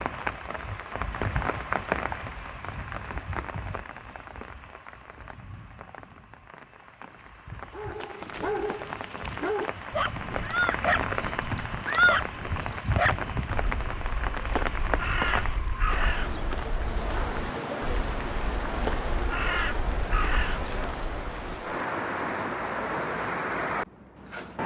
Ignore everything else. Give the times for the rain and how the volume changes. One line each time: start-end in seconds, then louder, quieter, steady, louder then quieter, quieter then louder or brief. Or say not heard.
0.0-24.6 quieter then louder.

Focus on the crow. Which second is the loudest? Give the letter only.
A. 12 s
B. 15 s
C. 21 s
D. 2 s
A.